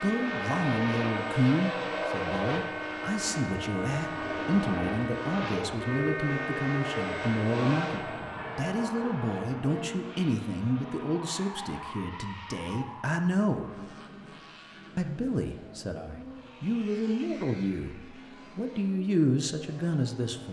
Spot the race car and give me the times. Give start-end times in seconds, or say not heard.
0.0-20.4.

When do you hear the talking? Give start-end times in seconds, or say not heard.
0.0-13.7, 14.9-20.4.